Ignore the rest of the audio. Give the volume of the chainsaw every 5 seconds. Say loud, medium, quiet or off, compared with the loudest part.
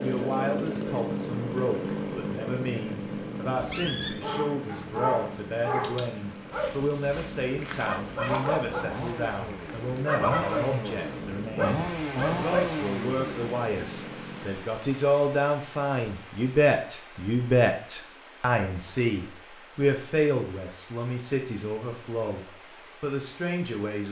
loud, medium, loud, off, off.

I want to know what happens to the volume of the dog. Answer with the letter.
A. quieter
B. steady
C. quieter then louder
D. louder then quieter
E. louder
B.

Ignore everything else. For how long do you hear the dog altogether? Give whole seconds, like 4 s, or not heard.
9 s.